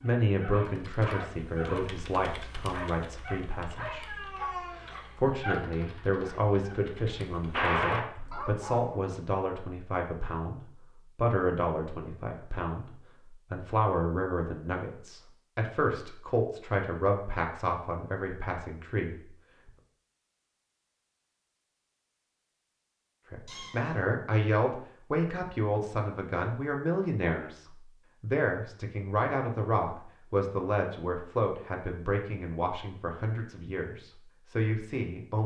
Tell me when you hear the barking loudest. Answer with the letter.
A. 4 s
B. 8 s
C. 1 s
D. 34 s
B.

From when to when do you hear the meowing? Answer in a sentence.
You can hear the meowing from 3.9 to 5.3 s and from 23.4 to 24.1 s.